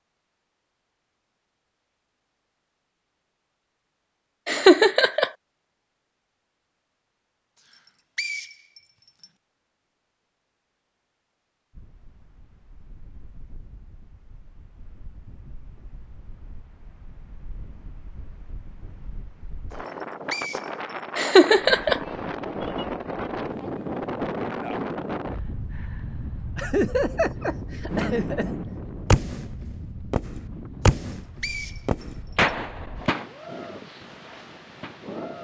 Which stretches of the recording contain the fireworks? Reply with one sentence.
The fireworks can be heard from 27.9 to 35.3 s.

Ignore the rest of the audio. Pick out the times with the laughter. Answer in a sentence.
The laughter can be heard from 4.5 to 5.3 s, from 21.1 to 22.0 s and from 26.6 to 28.5 s.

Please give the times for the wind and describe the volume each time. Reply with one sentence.
You can hear the wind from 11.7 to 35.3 s, getting louder then quieter.